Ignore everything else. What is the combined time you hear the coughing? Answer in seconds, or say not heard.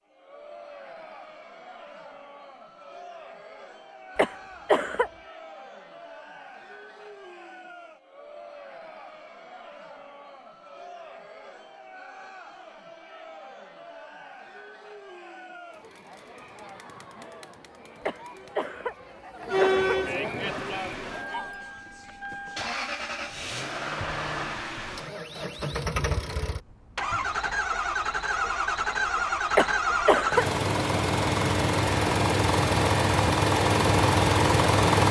4 s.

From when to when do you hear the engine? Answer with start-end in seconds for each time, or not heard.
20.4-35.0.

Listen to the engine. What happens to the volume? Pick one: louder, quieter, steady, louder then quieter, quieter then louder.
louder.